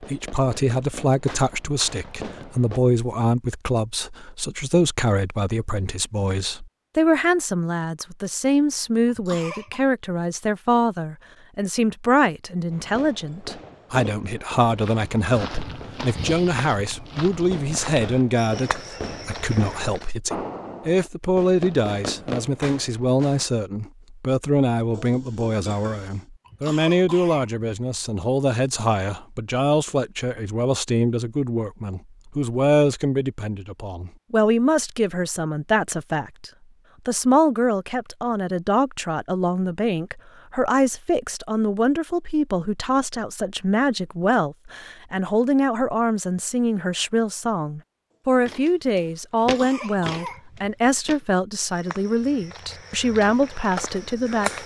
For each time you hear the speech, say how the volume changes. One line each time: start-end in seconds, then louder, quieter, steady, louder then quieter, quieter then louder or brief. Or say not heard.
0.0-54.6 steady.